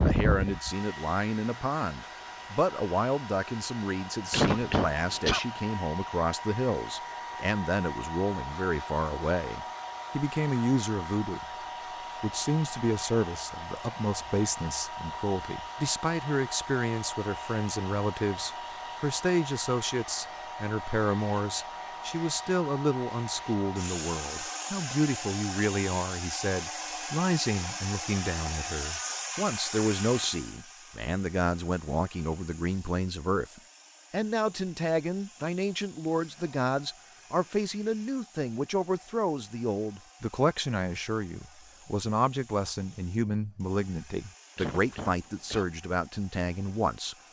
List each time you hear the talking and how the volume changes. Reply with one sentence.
The talking can be heard from 0.0 to 11.4 s, at a steady volume; and from 12.2 to 47.1 s, at a steady volume.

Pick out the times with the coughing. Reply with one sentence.
You can hear the coughing from 4.3 to 5.4 s and from 44.5 to 45.6 s.